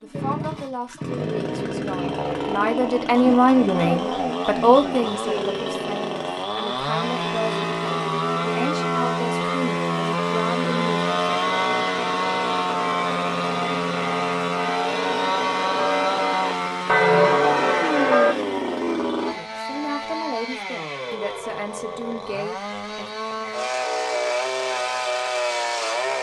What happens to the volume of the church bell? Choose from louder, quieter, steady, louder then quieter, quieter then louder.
louder.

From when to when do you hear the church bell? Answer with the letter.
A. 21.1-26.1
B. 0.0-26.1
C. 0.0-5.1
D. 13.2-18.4
D.